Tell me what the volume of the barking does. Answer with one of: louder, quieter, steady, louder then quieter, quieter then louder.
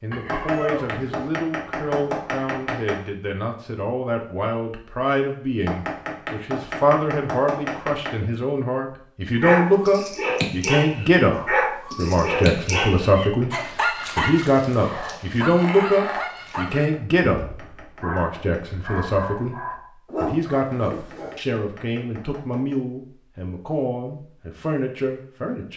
quieter.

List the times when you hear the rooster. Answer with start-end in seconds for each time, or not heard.
0.1-1.3.